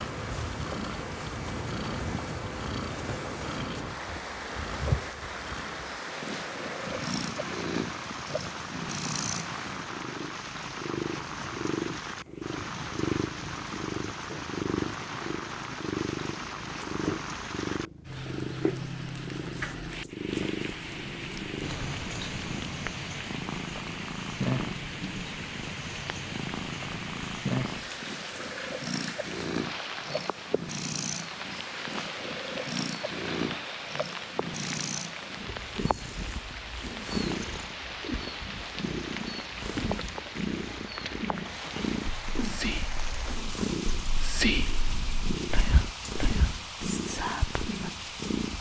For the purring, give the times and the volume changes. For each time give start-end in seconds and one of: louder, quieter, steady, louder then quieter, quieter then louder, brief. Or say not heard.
0.0-48.5 steady.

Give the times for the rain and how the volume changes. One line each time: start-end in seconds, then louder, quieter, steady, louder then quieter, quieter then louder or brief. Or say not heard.
0.0-48.5 steady.